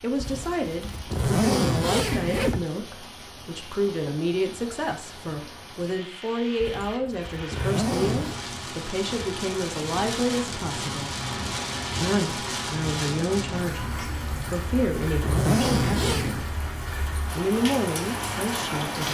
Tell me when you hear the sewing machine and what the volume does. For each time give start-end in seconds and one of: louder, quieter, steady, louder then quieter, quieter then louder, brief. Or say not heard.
not heard.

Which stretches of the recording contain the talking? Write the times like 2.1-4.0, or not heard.
0.0-11.1, 12.0-16.6, 17.4-19.0.